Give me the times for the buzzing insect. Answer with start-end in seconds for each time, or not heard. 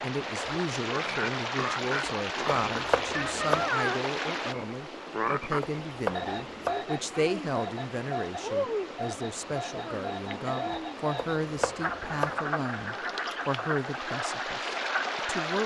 not heard.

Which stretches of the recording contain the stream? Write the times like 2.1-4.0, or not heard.
0.0-15.6.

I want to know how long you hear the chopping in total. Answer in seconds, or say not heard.
3 s.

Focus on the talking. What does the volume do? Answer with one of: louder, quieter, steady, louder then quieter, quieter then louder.
steady.